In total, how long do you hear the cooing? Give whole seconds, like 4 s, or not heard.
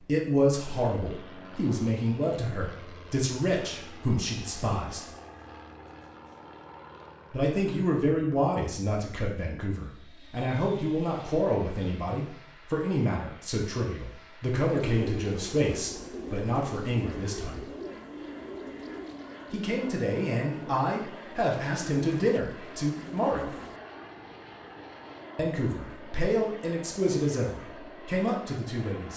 9 s.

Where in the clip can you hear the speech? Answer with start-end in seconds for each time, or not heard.
0.0-5.0, 7.3-17.6, 19.5-23.5, 25.4-29.1.